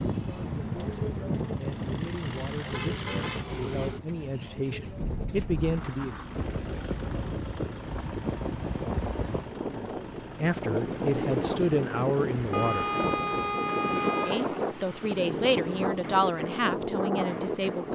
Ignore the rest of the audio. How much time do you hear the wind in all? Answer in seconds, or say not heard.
18 s.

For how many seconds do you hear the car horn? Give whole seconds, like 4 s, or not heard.
3 s.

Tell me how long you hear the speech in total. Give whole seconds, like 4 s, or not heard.
13 s.